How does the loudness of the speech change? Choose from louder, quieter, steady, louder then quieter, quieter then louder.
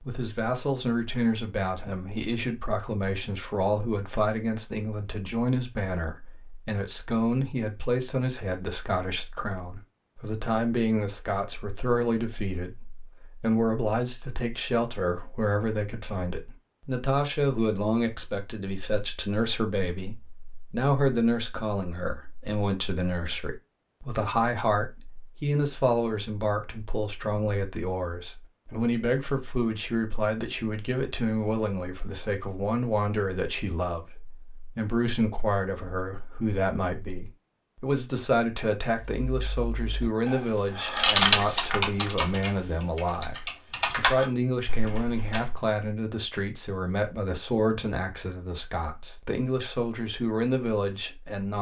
steady.